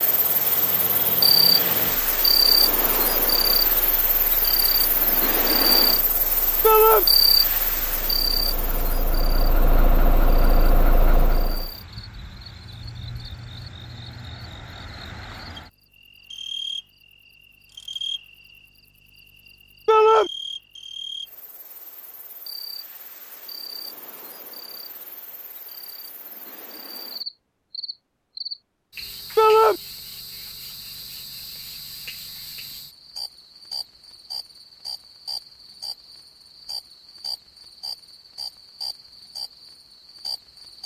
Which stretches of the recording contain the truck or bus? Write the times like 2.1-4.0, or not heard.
0.0-11.7.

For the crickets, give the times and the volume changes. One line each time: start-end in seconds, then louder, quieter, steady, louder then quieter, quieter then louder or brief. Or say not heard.
0.0-40.8 quieter.